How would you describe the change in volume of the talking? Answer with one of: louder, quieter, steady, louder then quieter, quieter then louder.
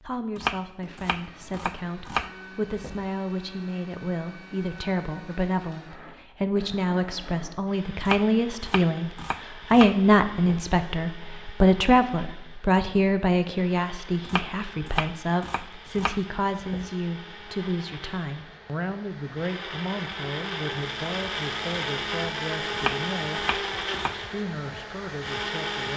louder then quieter.